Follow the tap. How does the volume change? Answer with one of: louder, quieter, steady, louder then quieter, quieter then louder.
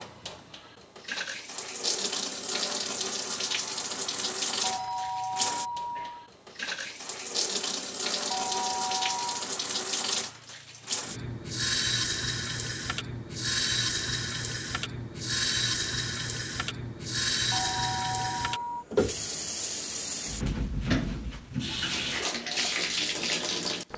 steady.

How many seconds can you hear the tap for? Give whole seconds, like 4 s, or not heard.
24 s.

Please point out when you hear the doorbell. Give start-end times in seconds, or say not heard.
4.6-6.3, 8.3-9.4, 17.5-18.9.